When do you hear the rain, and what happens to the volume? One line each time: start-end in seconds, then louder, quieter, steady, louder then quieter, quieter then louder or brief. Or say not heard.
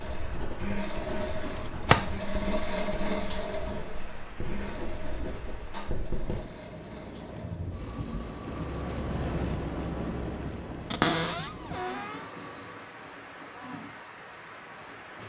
0.0-15.2 louder then quieter.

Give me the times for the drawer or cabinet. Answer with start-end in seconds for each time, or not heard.
1.6-2.0, 10.9-12.2.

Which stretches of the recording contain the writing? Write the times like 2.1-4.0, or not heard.
0.0-6.4.